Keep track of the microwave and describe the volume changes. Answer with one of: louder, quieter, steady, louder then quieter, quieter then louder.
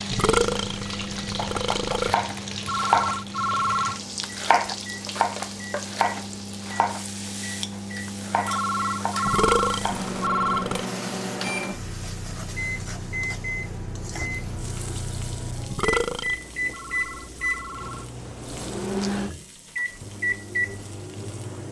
louder.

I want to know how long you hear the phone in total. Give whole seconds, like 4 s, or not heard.
5 s.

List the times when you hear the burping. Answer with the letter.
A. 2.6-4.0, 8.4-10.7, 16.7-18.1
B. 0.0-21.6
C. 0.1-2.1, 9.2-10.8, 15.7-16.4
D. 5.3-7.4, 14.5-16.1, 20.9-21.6
C.